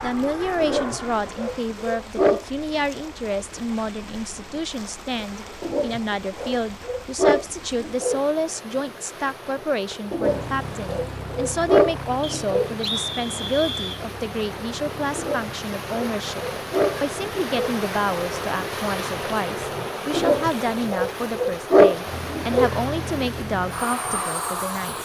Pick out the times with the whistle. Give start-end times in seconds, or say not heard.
12.2-14.1.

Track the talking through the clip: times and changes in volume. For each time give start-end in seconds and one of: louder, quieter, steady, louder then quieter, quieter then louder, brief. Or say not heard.
0.0-25.0 steady.